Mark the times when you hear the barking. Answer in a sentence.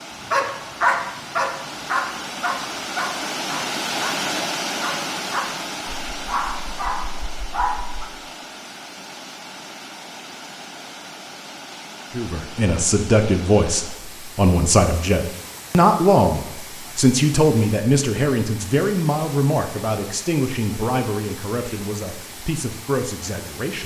The barking can be heard from 0.3 to 8.1 s.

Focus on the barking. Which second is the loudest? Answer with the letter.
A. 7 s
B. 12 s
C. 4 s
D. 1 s
D.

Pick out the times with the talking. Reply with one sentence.
The talking can be heard from 12.2 to 23.8 s.